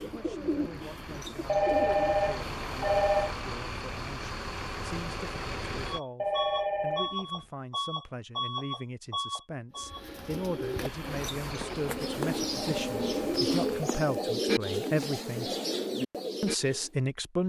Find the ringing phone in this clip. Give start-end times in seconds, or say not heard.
1.4-3.4, 6.2-7.5, 12.7-14.4.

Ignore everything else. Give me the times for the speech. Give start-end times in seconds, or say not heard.
0.0-15.5, 16.4-17.4.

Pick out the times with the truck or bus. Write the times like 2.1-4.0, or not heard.
0.0-13.9.